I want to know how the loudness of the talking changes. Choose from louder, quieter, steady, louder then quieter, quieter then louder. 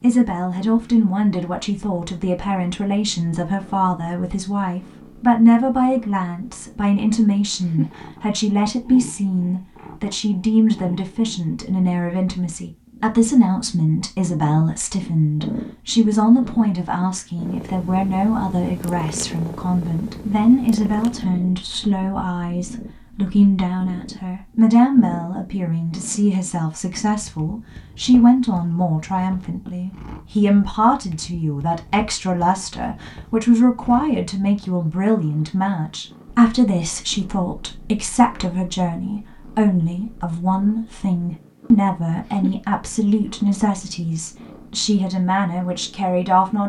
steady.